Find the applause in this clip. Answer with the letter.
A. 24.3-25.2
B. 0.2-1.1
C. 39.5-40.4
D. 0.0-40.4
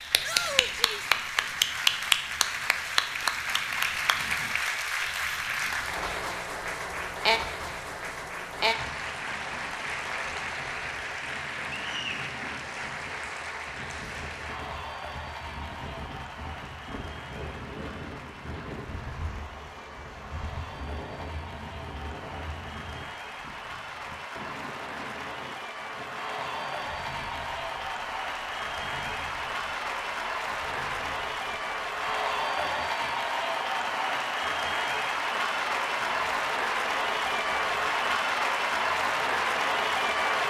D.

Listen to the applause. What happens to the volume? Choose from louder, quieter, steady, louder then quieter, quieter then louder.
quieter then louder.